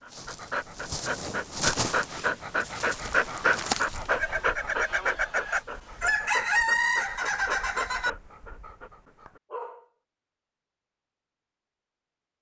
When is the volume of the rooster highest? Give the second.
7 s.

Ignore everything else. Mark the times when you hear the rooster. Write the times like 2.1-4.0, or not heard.
4.1-8.1.